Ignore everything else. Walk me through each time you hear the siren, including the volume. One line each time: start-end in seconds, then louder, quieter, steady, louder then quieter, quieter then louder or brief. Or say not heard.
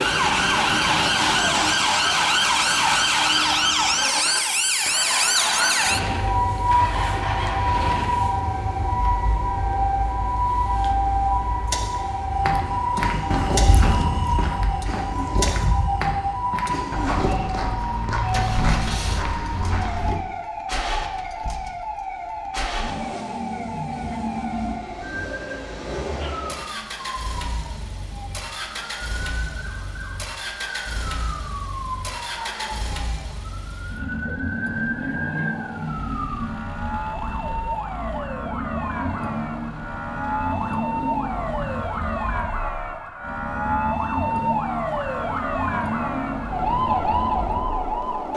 0.0-48.3 quieter then louder.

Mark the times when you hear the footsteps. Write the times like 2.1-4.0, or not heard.
12.2-20.2.